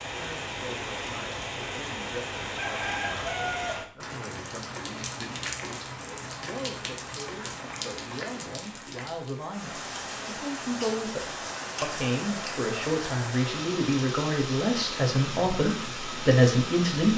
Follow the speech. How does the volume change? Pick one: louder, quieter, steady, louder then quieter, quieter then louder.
louder.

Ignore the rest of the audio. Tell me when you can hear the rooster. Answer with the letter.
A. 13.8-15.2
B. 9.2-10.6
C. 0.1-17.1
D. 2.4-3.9
D.